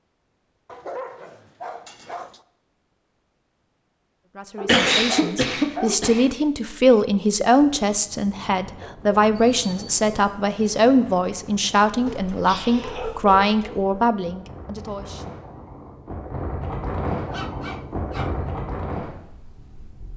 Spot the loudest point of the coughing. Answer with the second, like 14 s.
5 s.